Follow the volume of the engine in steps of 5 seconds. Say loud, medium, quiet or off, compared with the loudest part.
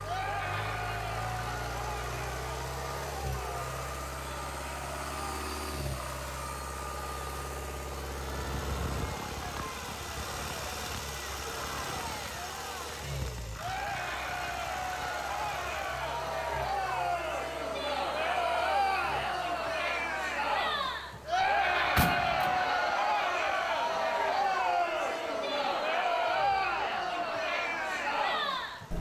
loud, loud, loud, medium, quiet, quiet.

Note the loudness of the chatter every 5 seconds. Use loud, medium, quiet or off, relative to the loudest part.
medium, quiet, medium, loud, loud, loud.